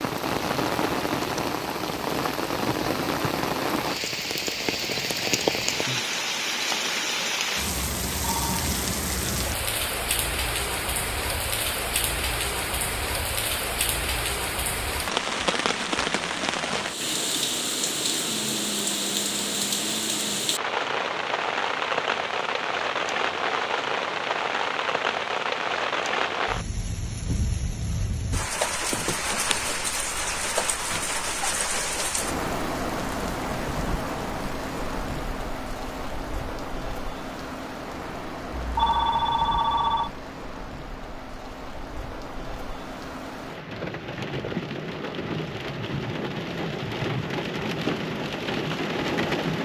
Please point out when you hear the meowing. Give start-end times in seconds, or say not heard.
not heard.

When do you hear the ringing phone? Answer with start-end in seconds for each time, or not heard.
8.2-8.7, 38.5-40.1.